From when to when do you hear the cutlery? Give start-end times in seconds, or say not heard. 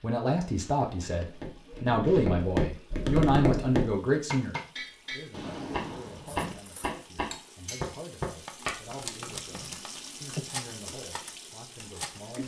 6.2-12.4.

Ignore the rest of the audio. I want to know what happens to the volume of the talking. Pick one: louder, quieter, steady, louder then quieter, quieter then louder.
quieter.